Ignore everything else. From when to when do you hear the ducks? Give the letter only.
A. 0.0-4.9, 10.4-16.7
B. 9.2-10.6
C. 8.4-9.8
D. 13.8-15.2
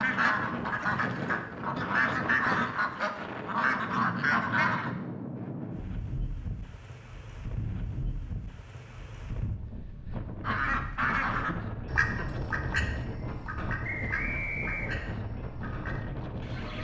A.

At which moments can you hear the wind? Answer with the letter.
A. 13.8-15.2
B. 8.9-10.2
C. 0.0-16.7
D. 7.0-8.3
C.